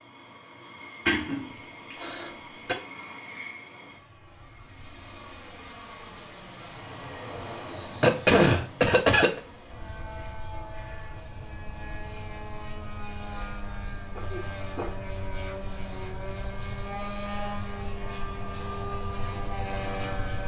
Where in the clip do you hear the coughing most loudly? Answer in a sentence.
The loudest moment of the coughing is at 8 seconds.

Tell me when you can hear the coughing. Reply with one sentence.
You can hear the coughing from 1.1 to 2.8 s, from 8.0 to 9.4 s and from 14.2 to 14.9 s.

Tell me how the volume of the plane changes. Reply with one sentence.
The loudness of the plane goes up.